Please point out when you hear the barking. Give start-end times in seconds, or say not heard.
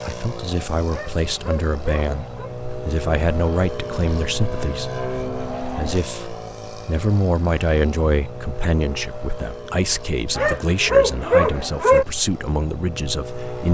0.9-2.5, 10.3-12.1.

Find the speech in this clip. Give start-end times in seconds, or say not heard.
0.0-4.9, 5.8-13.6.